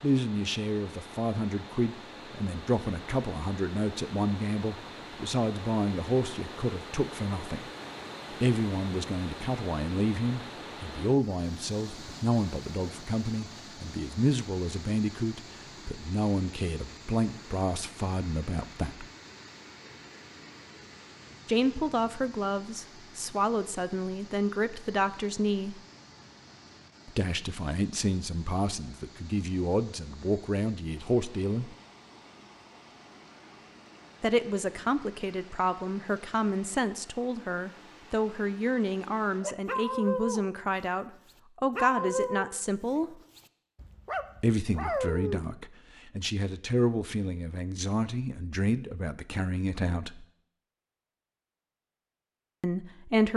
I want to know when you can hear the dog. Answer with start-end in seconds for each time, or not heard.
39.4-40.9, 41.8-45.5.